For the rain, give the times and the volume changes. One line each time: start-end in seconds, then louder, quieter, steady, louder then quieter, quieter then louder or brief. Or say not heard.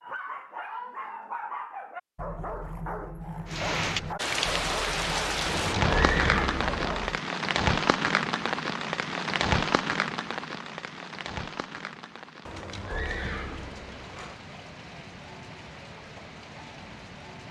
3.5-17.4 quieter.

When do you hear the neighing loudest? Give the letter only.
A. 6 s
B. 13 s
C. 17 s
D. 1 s
A.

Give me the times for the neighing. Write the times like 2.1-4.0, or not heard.
5.5-6.8, 12.4-14.3.